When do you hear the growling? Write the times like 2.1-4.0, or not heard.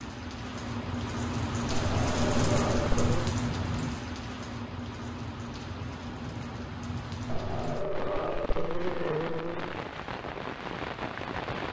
1.7-3.4, 7.2-9.8.